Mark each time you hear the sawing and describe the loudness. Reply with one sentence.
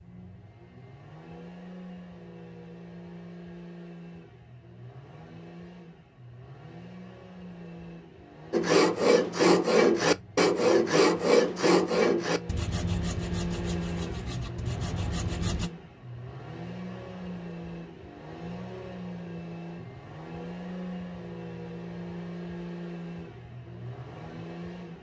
You can hear the sawing from 8.5 to 15.7 s, getting quieter.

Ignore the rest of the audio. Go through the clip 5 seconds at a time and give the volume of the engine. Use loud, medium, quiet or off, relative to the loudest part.
medium, medium, loud, loud, loud.